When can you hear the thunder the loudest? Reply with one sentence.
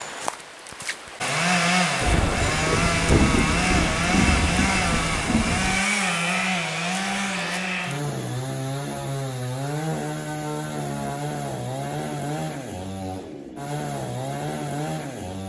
The loudest moment of the thunder is at 3 seconds.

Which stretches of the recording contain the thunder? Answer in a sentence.
The thunder can be heard from 2.0 to 5.8 s.